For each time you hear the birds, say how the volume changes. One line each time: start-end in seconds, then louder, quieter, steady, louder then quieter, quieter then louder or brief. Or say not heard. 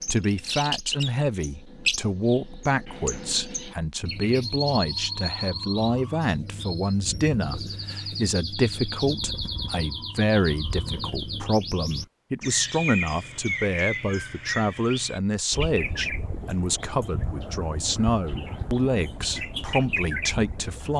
0.0-20.9 steady.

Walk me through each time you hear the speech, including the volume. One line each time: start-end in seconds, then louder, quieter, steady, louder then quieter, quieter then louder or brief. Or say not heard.
0.1-20.9 steady.